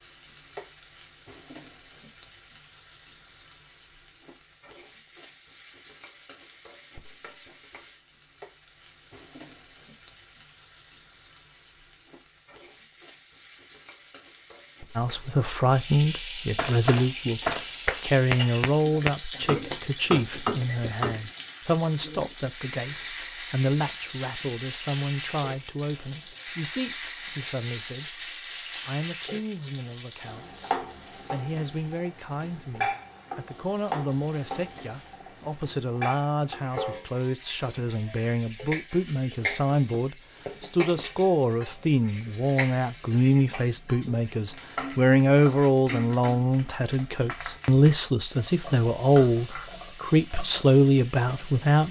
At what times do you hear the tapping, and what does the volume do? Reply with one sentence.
The tapping can be heard from 16.6 to 21.9 s, at a steady volume.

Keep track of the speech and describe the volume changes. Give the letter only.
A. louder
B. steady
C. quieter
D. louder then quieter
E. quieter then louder
E.